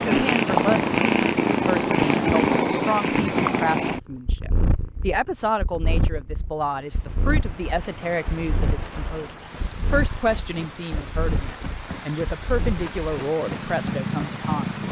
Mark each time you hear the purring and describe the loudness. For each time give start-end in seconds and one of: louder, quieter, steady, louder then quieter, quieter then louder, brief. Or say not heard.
0.0-14.8 quieter.